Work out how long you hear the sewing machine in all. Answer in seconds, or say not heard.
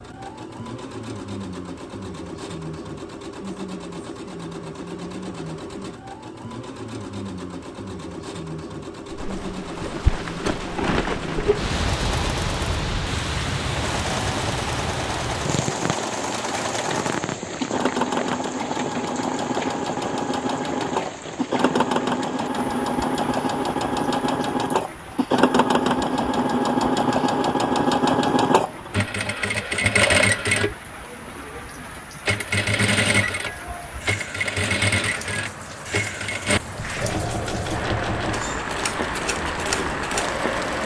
41 s.